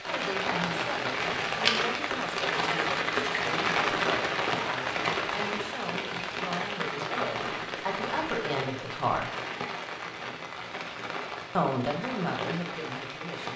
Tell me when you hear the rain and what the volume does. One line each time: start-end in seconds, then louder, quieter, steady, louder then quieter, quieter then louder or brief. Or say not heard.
0.0-13.5 quieter.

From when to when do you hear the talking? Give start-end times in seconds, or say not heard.
0.0-9.2, 11.6-13.5.